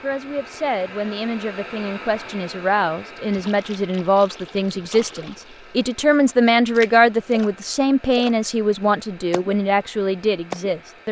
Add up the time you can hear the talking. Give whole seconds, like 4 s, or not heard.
11 s.